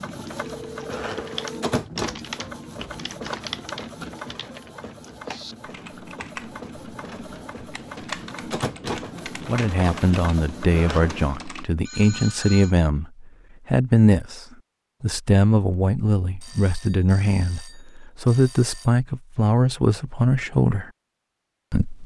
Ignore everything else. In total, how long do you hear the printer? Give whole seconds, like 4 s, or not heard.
11 s.